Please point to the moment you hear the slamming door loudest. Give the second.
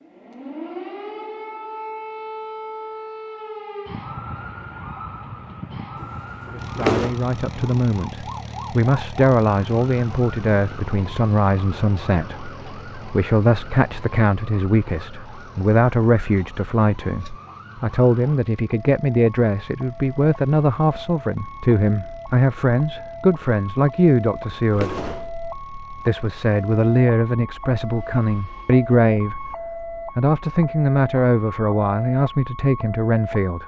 7 s.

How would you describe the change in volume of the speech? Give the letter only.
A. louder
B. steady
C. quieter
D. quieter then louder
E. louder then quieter
B.